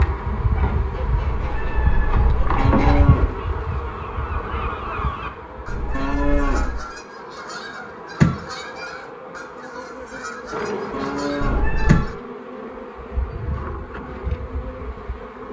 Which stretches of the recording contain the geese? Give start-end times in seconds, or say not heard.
0.5-12.2.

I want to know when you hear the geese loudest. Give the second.
8 s.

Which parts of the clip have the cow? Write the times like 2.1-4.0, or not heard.
2.5-3.4, 5.9-6.8, 10.9-11.8.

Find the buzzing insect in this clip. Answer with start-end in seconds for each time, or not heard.
0.0-15.4.